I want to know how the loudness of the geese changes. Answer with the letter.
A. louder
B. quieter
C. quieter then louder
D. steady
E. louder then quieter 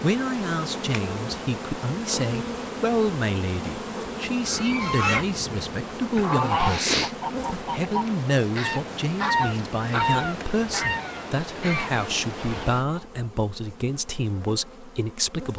B.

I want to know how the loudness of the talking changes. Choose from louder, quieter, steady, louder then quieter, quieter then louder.
steady.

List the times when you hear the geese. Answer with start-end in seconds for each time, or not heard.
4.5-13.2.